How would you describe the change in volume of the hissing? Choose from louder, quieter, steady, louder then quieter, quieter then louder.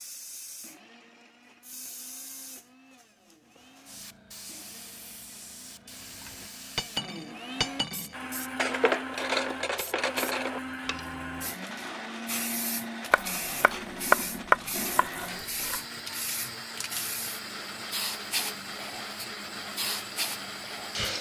louder.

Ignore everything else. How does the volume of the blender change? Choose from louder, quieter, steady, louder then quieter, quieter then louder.
louder.